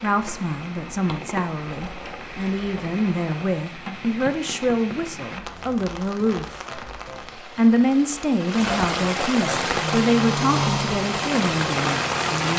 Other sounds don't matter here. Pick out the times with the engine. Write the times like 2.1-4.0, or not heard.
9.4-12.4.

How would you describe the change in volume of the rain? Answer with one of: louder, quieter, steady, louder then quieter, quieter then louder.
louder.